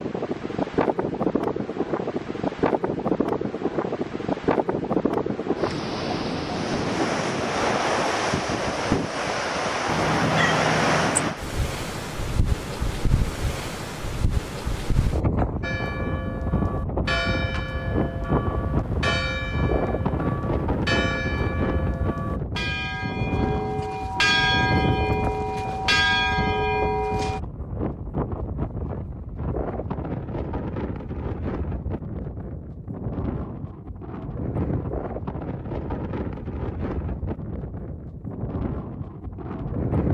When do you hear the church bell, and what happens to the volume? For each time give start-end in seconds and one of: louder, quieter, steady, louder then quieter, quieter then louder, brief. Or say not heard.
15.6-27.4 louder.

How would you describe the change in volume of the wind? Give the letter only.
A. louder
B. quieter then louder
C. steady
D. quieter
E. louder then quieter
D.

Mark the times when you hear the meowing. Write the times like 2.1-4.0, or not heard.
9.8-11.3.